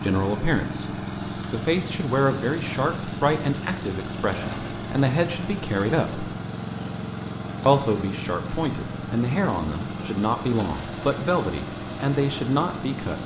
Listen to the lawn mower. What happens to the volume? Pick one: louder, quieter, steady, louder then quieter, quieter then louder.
steady.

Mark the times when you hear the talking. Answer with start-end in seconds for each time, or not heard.
0.0-6.2, 7.7-13.2.